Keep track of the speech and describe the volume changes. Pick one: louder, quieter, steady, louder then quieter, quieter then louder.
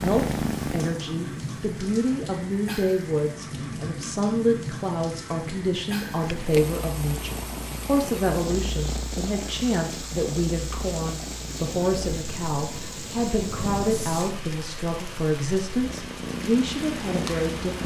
steady.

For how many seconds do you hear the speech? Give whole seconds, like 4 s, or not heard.
18 s.